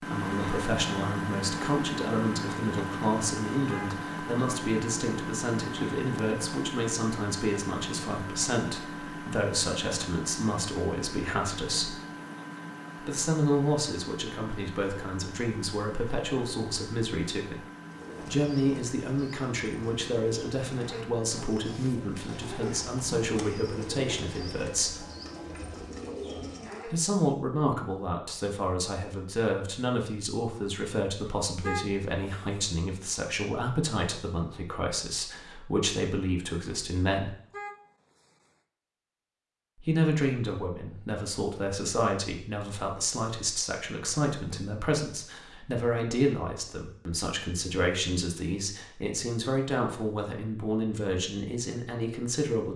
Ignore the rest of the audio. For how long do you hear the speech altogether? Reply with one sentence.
The speech can be heard for 47 seconds in total.